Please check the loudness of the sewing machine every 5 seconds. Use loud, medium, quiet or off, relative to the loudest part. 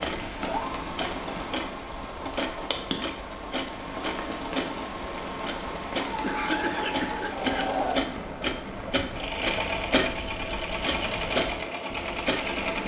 medium, loud, loud.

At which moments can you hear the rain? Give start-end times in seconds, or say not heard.
0.0-12.8.